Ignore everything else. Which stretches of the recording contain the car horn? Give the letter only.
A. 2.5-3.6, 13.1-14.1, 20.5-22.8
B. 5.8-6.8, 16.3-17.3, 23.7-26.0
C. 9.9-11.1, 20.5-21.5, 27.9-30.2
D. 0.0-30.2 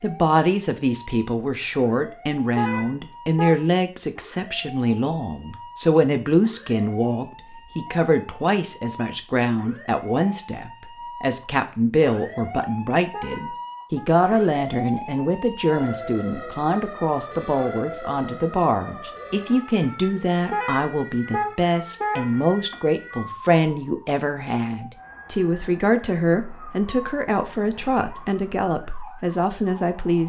A.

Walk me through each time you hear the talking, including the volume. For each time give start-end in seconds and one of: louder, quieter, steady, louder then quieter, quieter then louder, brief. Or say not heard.
0.0-30.2 steady.